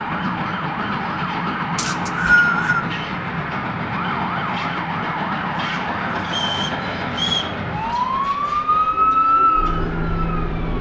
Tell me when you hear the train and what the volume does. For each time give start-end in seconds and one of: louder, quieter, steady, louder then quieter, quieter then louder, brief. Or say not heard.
0.0-10.7 quieter.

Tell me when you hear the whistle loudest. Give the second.
2 s.